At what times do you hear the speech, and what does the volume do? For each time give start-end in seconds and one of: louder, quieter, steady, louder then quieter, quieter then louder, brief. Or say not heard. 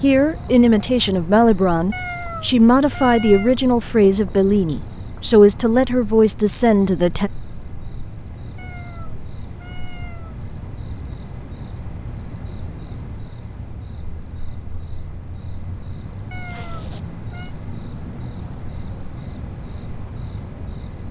0.0-7.3 steady.